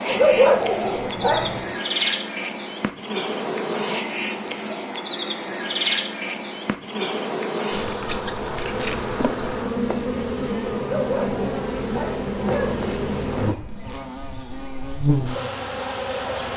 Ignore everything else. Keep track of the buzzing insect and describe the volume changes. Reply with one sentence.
The loudness of the buzzing insect stays about the same.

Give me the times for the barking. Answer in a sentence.
The barking can be heard from 0.1 to 1.6 s and from 10.8 to 12.8 s.